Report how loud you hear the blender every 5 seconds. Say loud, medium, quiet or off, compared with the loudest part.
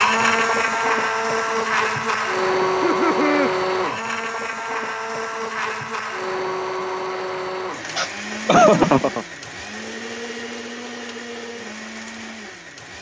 loud, medium, quiet.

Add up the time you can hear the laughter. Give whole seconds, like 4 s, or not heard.
2 s.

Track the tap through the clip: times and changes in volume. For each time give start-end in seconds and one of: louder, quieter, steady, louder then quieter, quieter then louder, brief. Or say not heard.
not heard.